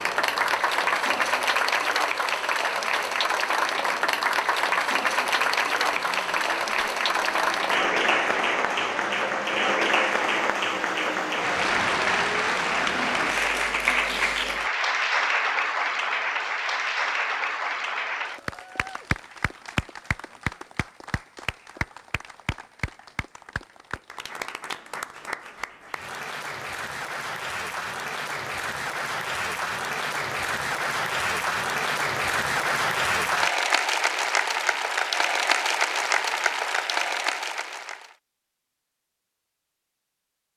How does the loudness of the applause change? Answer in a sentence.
The volume of the applause goes down, then up.